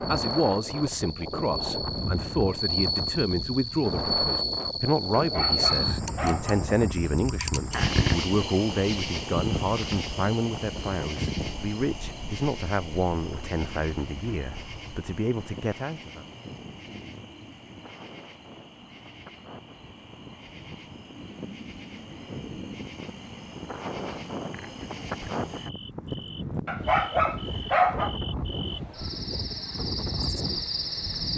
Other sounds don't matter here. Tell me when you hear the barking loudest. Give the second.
28 s.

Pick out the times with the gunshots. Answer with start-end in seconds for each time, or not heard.
not heard.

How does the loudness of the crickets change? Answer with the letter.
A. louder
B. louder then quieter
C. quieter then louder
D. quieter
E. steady
C.